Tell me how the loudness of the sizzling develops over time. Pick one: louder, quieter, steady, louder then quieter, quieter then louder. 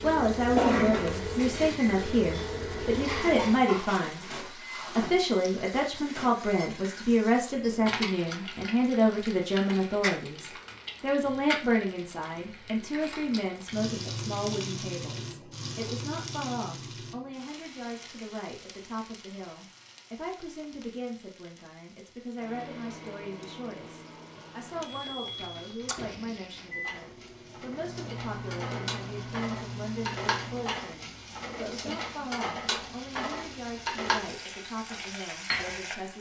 quieter then louder.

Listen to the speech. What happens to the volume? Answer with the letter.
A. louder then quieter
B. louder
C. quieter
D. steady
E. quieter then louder
C.